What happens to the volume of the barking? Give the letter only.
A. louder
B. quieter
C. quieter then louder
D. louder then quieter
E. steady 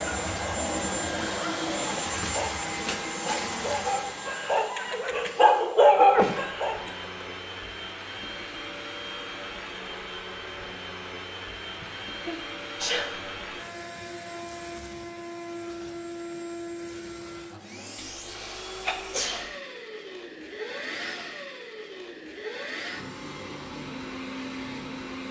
A.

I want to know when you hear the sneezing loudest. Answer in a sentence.
The volume of the sneezing peaks at 6 seconds.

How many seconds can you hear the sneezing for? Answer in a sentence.
The sneezing can be heard for 4 seconds in total.